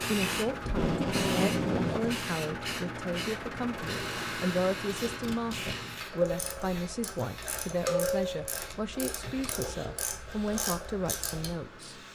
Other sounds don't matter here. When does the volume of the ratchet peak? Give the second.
8 s.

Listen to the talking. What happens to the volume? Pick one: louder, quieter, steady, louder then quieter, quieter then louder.
steady.